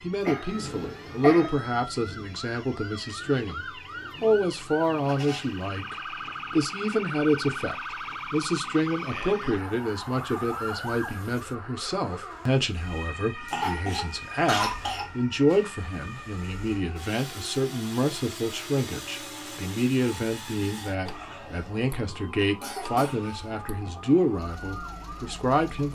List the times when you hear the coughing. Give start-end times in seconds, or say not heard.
0.2-1.6, 13.4-15.1, 22.6-23.3.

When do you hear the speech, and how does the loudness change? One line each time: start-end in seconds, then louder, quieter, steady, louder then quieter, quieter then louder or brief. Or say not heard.
0.0-25.9 steady.